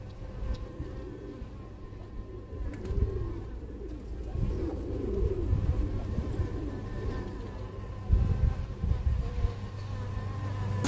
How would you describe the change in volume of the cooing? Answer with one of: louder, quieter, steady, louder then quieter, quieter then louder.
louder then quieter.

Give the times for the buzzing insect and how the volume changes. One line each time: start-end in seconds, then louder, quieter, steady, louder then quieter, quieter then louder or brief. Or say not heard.
0.0-10.8 louder.